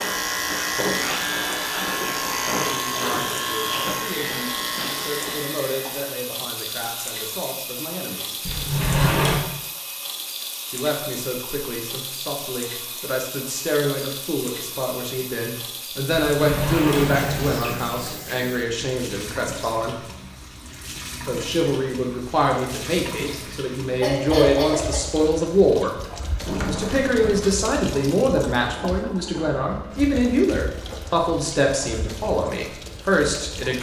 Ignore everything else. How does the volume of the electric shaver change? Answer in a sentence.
The volume of the electric shaver goes down.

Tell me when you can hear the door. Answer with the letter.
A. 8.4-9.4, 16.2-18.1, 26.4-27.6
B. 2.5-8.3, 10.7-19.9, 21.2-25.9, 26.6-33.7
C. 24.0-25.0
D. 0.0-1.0
A.